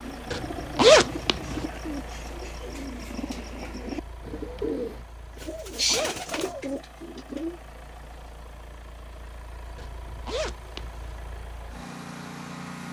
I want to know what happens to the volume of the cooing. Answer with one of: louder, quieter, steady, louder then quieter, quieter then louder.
louder.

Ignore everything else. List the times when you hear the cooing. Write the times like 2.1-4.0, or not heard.
0.0-7.6.